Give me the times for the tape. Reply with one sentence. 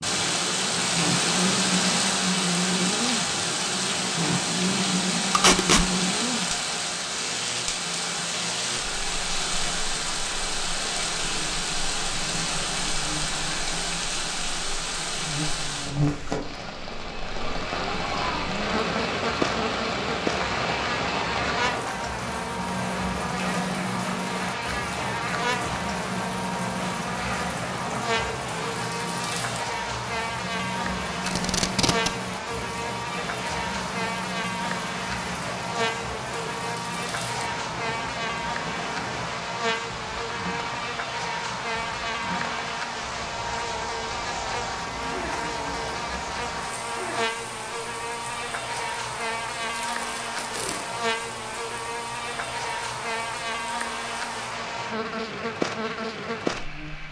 The tape can be heard from 5.3 to 5.8 s, from 31.2 to 32.1 s and from 49.8 to 50.9 s.